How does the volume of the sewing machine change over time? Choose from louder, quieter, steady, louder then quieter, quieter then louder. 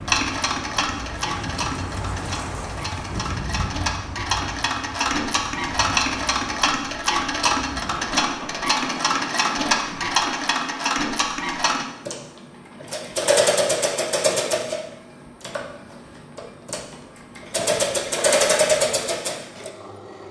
louder.